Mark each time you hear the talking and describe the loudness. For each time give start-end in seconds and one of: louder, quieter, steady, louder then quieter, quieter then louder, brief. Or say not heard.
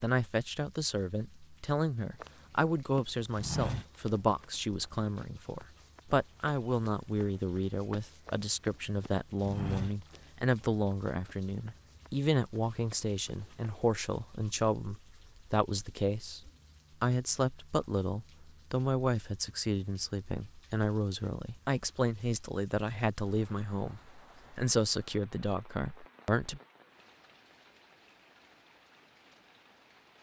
0.0-26.6 steady.